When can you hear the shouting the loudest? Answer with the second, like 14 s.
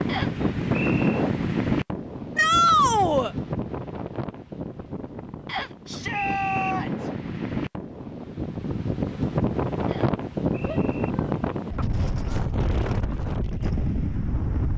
3 s.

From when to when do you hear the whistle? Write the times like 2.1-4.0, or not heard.
0.1-1.1, 5.5-6.8, 9.8-11.1.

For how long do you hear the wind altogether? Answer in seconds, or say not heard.
15 s.